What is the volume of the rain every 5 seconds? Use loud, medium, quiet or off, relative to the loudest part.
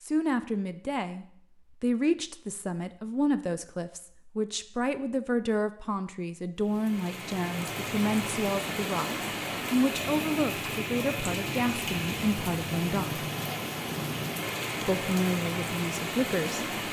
off, loud, loud, loud.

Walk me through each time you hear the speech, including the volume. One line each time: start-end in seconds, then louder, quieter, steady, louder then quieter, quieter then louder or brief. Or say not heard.
0.0-13.2 steady
14.8-16.6 brief.